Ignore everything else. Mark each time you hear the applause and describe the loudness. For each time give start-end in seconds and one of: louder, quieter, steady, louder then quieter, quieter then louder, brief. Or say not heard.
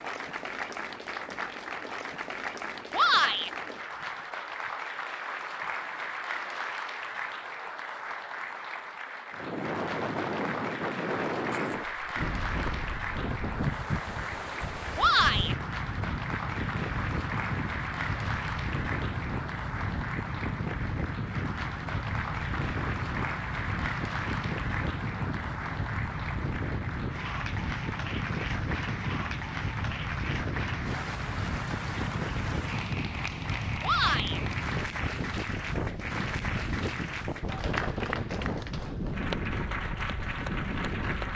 0.0-41.3 steady.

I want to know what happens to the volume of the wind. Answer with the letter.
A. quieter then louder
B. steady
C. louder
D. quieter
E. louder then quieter
B.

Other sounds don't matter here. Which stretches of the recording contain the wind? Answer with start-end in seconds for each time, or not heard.
9.3-41.3.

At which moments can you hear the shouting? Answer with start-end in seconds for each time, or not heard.
2.9-3.5, 14.9-15.6, 33.8-34.4.